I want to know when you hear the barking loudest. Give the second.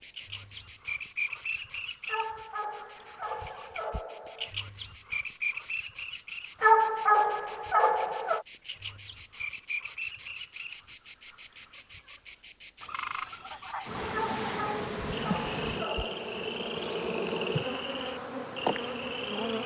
7 s.